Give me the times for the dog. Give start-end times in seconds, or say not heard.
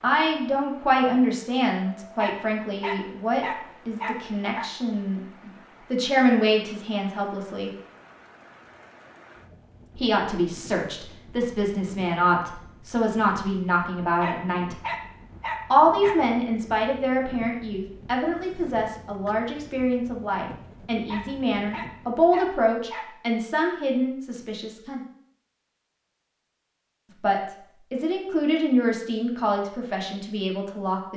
2.1-4.7, 14.2-16.2, 21.1-23.1.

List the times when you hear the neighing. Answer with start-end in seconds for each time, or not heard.
not heard.